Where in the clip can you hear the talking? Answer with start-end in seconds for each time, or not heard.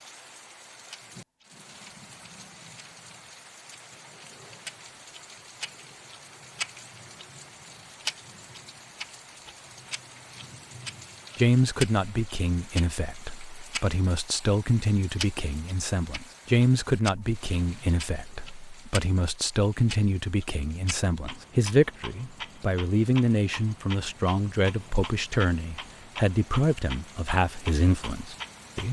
11.3-28.8.